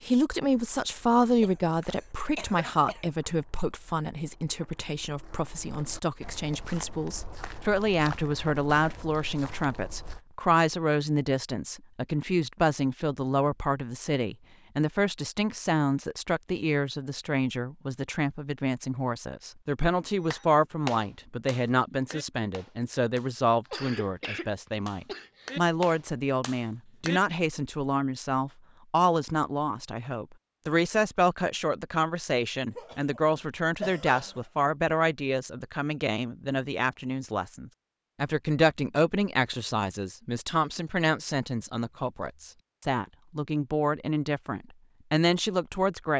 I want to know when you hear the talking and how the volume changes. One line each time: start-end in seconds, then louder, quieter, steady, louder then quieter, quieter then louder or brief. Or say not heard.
0.0-46.1 steady.